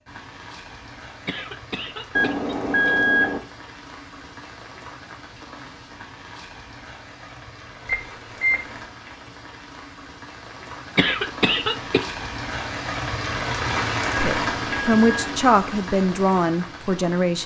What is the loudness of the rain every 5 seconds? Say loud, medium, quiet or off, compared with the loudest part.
quiet, quiet, loud, medium.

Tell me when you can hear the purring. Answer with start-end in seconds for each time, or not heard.
not heard.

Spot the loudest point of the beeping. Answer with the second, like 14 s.
3 s.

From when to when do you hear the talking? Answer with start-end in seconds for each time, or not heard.
14.2-17.4.